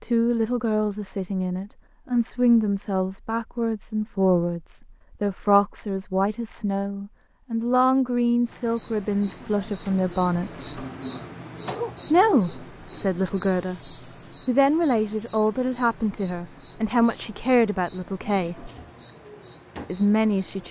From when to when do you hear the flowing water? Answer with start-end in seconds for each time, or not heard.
not heard.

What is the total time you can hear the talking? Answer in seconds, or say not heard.
18 s.